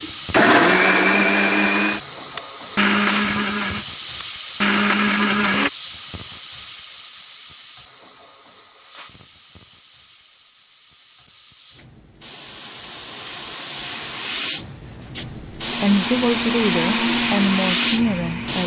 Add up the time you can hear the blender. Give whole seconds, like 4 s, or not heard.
9 s.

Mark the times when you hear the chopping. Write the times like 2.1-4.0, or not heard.
not heard.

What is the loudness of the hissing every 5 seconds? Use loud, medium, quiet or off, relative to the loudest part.
loud, medium, medium, loud.